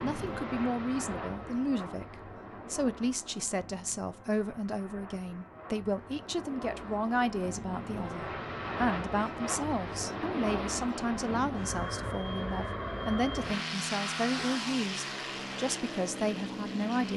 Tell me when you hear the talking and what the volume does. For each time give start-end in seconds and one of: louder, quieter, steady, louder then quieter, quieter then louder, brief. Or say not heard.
0.0-17.1 steady.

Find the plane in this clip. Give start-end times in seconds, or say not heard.
0.0-17.1.